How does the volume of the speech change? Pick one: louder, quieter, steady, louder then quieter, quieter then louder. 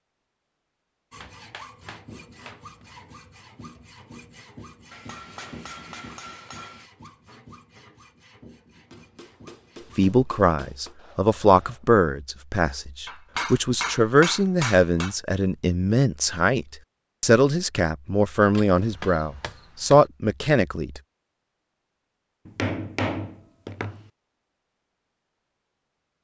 steady.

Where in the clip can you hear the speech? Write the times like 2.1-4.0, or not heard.
9.9-21.0.